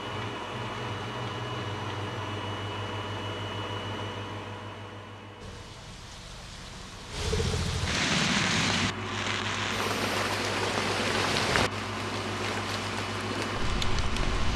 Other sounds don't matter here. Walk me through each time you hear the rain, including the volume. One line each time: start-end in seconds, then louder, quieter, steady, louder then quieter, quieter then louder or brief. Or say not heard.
5.4-14.5 louder then quieter.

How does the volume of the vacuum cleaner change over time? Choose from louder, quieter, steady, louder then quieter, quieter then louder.
quieter then louder.